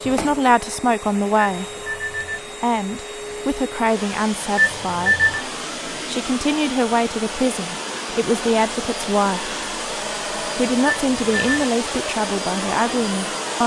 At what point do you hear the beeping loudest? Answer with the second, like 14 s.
5 s.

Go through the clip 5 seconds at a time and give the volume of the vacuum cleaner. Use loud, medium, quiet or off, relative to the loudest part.
medium, loud, loud.